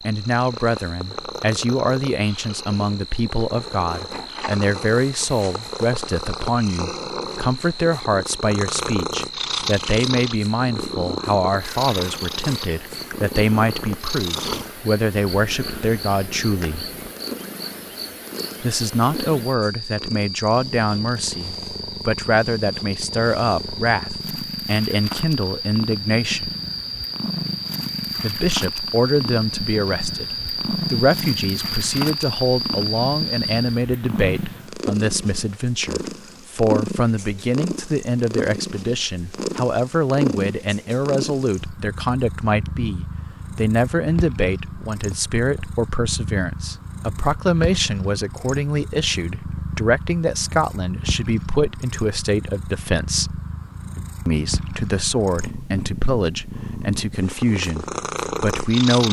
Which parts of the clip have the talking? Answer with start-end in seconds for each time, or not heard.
0.0-16.9, 18.6-26.6, 28.2-53.4, 54.2-59.0.